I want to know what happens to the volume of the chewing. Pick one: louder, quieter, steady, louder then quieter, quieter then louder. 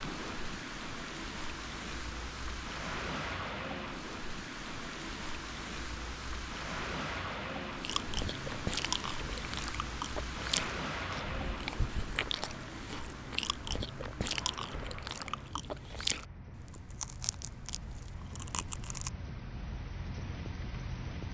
quieter.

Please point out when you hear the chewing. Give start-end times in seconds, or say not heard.
7.8-19.1.